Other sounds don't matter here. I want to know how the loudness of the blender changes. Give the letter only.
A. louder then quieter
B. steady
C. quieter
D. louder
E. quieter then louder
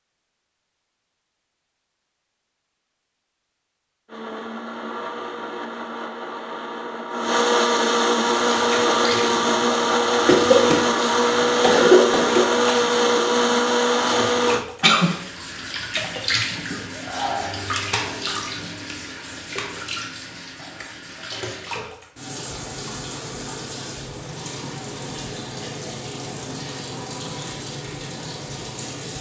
D.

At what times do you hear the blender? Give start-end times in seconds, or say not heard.
4.0-14.7.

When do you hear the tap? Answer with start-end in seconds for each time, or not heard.
8.2-29.1.